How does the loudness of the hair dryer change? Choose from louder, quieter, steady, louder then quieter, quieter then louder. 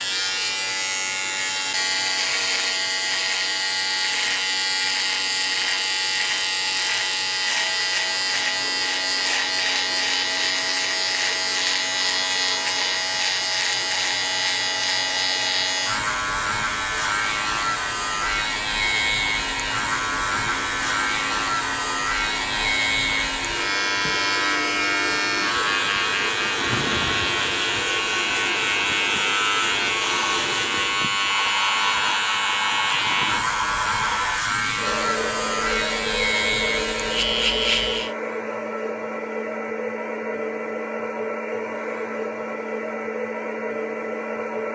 louder.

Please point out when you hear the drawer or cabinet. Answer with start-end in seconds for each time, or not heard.
not heard.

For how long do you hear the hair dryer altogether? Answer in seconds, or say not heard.
45 s.